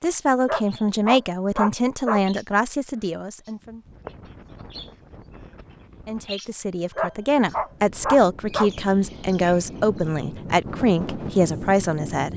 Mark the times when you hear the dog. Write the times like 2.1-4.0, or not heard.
0.5-2.2, 7.0-8.7.